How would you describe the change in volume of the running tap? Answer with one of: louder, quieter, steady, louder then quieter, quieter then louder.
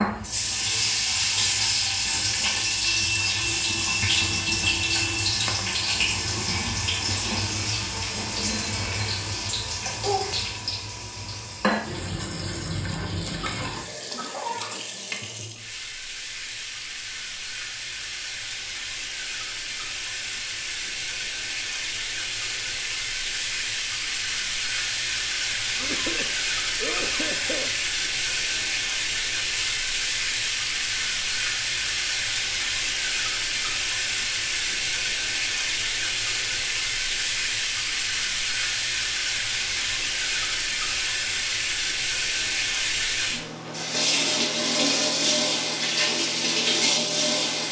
quieter then louder.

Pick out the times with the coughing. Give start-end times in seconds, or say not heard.
13.3-14.9, 25.8-27.8.